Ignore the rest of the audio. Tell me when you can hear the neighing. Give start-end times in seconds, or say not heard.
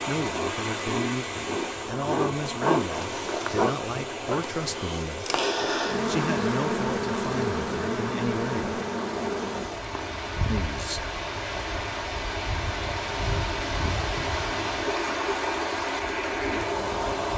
not heard.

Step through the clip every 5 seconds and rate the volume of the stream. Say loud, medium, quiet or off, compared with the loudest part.
medium, medium, loud, loud.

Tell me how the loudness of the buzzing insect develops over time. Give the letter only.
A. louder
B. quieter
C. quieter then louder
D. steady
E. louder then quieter
B.